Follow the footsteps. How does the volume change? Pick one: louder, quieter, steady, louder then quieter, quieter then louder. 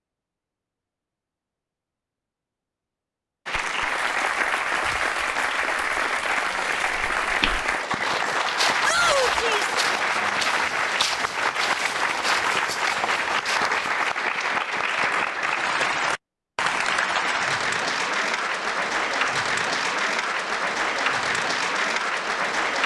steady.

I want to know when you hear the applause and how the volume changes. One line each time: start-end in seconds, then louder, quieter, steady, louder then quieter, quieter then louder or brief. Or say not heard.
3.5-22.8 steady.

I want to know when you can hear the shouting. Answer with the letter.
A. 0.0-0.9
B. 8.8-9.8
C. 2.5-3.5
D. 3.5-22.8
B.